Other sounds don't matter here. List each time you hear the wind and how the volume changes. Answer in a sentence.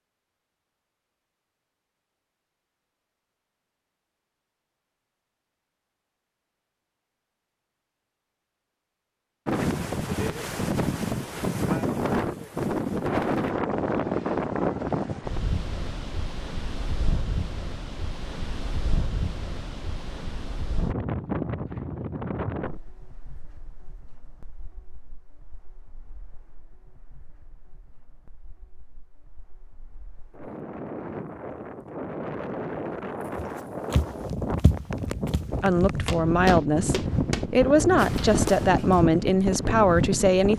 You can hear the wind from 9.4 to 40.5 s, getting quieter then louder.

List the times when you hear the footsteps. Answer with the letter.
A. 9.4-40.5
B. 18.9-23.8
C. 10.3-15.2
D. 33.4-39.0
D.